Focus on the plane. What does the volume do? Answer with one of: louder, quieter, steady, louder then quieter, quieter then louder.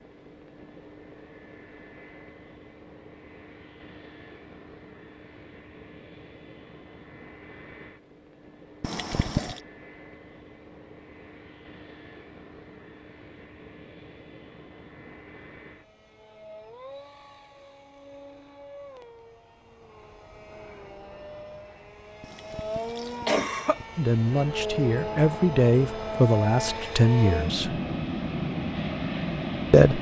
louder.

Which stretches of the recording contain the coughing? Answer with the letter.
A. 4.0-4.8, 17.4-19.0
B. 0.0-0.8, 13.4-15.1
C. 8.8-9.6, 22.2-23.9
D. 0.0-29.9
C.